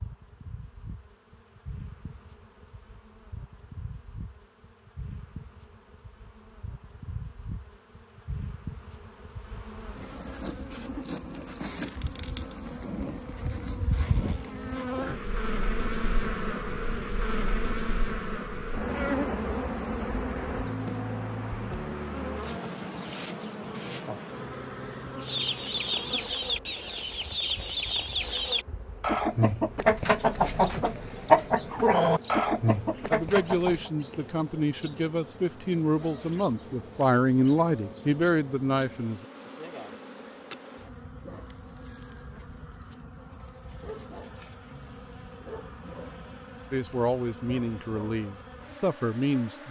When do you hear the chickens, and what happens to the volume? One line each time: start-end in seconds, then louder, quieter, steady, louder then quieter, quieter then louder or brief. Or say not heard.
25.2-33.9 louder.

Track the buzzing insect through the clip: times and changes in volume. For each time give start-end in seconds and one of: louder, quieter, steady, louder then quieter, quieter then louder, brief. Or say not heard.
0.0-49.6 louder then quieter.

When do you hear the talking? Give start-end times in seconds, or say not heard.
33.1-39.2, 46.7-49.6.